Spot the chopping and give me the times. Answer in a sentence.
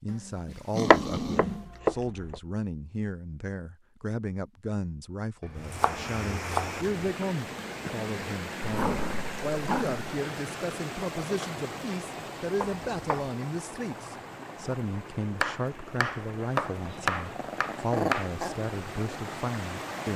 The chopping can be heard from 0.9 to 2.4 s, from 5.5 to 7.0 s, from 12.6 to 13.3 s and from 15.4 to 18.3 s.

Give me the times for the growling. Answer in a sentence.
You can hear the growling from 0.1 to 1.7 s, from 8.6 to 10.0 s and from 16.9 to 18.6 s.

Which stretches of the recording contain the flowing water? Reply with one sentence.
You can hear the flowing water from 5.5 to 20.1 s.